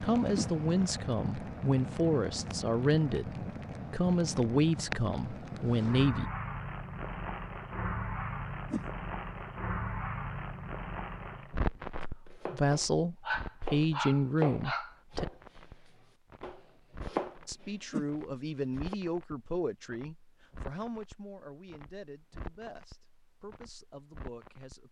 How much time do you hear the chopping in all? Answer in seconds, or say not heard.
6 s.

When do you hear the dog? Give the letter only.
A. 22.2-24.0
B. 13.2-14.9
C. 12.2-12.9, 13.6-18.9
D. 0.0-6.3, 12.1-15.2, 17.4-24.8
B.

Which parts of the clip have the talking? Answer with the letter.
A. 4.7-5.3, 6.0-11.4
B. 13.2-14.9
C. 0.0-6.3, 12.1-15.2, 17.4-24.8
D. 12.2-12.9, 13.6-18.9
C.